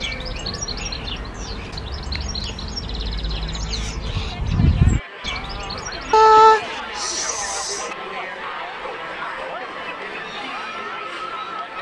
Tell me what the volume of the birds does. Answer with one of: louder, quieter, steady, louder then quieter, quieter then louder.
louder then quieter.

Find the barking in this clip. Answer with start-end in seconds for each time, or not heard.
6.1-8.0.